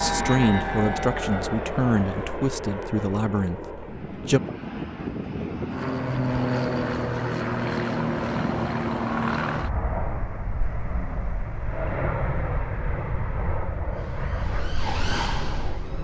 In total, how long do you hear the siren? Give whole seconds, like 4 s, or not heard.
2 s.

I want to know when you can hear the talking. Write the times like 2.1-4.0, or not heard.
0.0-4.4.